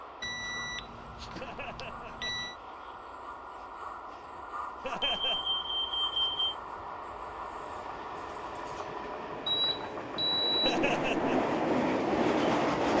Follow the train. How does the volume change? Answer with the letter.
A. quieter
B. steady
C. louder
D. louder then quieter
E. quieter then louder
C.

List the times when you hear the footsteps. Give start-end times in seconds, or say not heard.
not heard.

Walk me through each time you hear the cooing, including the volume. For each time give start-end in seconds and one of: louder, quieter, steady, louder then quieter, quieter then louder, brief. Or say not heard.
not heard.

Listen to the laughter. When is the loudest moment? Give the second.
11 s.